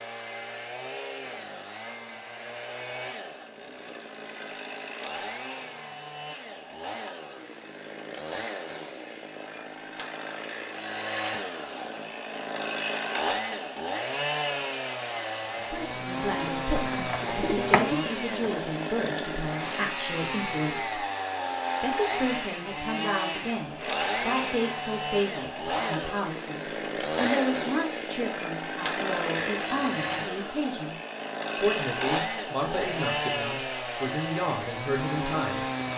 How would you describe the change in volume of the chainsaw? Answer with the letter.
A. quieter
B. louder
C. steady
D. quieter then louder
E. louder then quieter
B.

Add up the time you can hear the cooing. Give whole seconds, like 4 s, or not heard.
2 s.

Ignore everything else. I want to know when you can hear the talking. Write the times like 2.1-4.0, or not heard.
15.7-21.0, 21.8-30.9, 31.6-35.6.